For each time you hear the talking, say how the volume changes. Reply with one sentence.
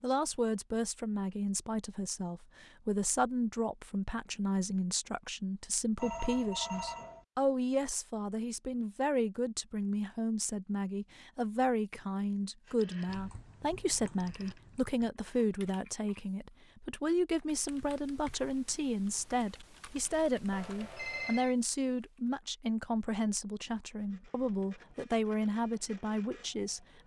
You can hear the talking from 0.0 to 27.0 s, at a steady volume.